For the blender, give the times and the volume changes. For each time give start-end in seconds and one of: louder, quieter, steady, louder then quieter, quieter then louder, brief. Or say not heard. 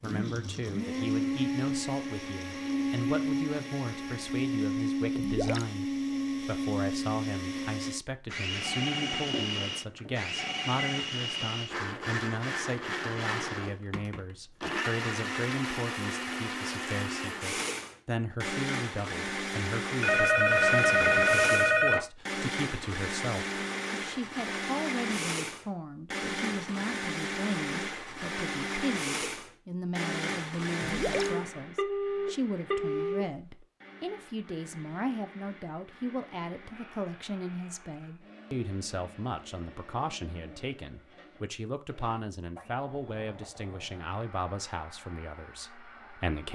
0.0-46.5 quieter.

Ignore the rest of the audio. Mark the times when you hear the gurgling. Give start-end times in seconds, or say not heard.
5.2-5.7, 30.8-31.4.